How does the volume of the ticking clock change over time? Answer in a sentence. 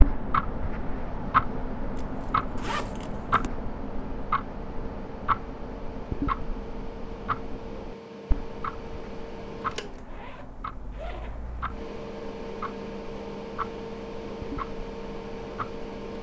The volume of the ticking clock goes down.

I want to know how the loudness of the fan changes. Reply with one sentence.
The loudness of the fan goes up.